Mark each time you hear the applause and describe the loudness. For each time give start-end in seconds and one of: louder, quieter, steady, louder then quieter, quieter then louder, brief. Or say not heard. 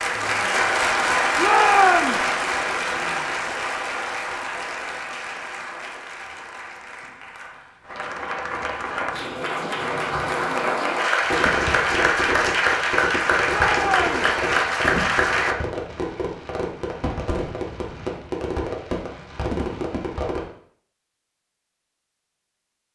0.0-15.6 quieter then louder.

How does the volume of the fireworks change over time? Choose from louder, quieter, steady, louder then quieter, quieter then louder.
steady.